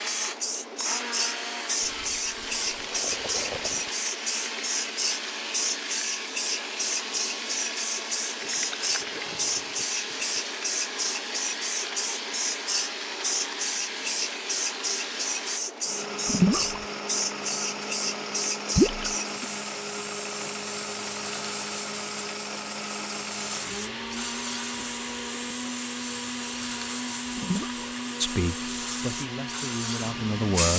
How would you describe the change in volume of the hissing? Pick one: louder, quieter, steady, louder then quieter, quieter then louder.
quieter.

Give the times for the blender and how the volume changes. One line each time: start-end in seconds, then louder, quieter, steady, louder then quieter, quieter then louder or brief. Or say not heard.
0.0-30.7 steady.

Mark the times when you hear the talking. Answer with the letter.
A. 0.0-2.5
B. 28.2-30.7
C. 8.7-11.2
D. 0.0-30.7
B.